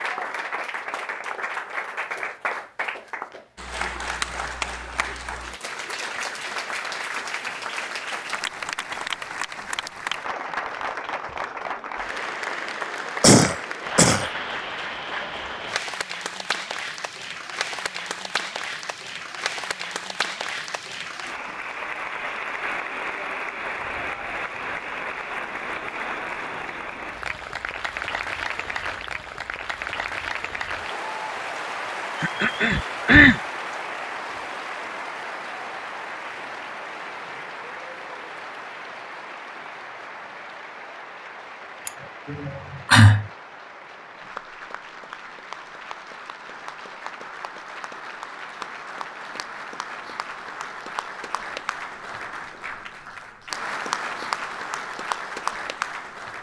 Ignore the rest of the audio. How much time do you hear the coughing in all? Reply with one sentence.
The coughing can be heard for 4 seconds in total.